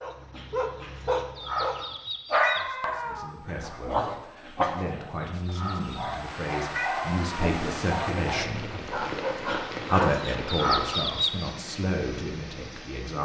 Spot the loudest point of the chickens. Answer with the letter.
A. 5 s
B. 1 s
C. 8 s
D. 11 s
D.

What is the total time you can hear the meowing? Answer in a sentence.
The meowing can be heard for 2 seconds in total.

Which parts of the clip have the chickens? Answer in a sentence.
The chickens can be heard from 0.3 to 2.6 s, from 4.4 to 6.2 s and from 9.4 to 11.5 s.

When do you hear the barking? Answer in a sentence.
The barking can be heard from 0.0 to 10.3 s.